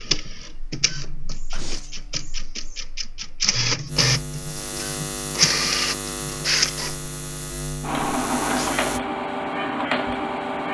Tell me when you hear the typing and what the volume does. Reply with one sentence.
You can't hear the typing here.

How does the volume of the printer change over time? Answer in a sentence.
The loudness of the printer goes up.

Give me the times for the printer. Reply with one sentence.
The printer can be heard from 0.0 to 10.7 s.